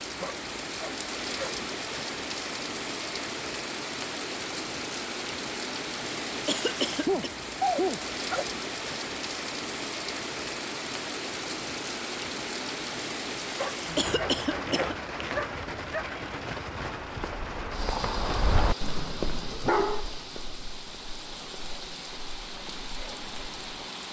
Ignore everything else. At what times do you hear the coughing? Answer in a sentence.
You can hear the coughing from 6.5 to 7.3 s and from 13.9 to 14.9 s.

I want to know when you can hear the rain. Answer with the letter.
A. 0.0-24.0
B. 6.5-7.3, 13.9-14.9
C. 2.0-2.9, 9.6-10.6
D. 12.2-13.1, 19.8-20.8
A.